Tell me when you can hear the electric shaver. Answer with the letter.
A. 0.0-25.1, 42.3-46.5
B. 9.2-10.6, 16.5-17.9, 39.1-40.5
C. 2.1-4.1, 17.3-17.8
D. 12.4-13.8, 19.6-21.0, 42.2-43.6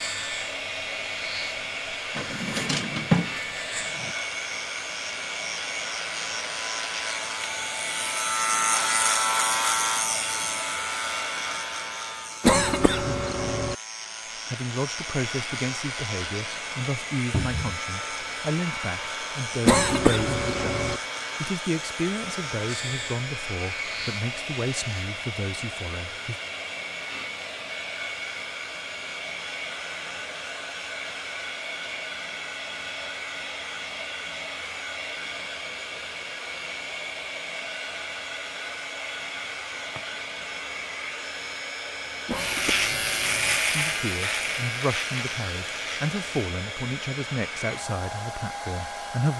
A.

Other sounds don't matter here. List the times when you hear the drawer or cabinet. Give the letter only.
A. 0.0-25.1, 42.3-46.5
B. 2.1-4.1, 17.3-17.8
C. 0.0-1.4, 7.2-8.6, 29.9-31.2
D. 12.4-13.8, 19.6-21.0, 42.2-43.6
B.